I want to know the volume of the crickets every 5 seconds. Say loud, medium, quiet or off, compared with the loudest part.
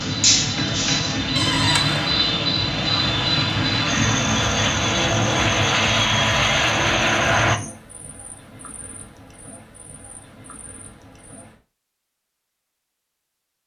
loud, medium, quiet.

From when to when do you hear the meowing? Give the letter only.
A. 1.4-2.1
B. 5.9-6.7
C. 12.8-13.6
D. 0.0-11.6
A.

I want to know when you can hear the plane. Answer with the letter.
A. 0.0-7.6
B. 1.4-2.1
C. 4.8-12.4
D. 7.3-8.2
A.